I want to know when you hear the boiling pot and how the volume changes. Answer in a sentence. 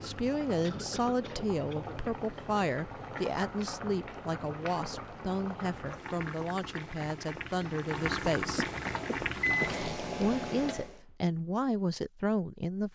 The boiling pot can be heard from 0.0 to 11.0 s, getting louder.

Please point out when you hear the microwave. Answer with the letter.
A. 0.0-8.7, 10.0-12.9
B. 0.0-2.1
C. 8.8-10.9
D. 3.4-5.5
C.